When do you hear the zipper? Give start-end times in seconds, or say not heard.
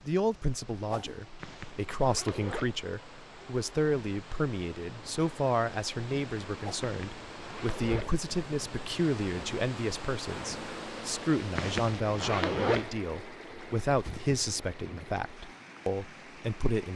1.4-2.8, 6.8-8.2, 11.6-12.9.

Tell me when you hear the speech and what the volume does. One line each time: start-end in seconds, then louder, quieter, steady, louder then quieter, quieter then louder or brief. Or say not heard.
0.1-16.9 steady.